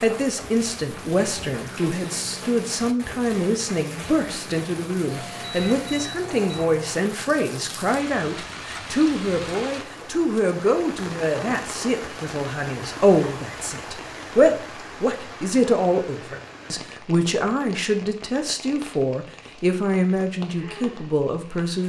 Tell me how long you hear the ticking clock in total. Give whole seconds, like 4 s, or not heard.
not heard.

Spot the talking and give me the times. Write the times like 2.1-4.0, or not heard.
0.0-21.8.